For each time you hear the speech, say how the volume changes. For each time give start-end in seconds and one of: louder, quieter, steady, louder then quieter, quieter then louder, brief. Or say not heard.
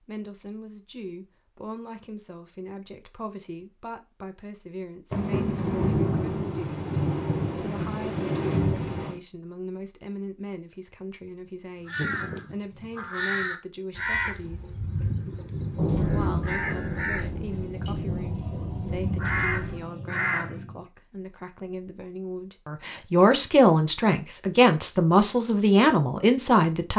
0.0-14.9 steady
15.9-26.9 louder.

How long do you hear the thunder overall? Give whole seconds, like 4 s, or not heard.
8 s.